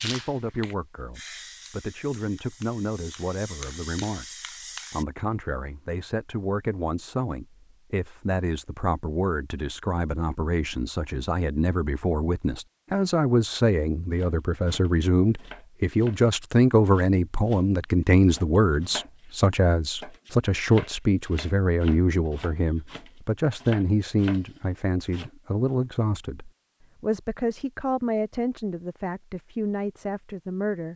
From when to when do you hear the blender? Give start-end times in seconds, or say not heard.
not heard.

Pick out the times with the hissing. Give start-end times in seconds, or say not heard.
0.0-5.0.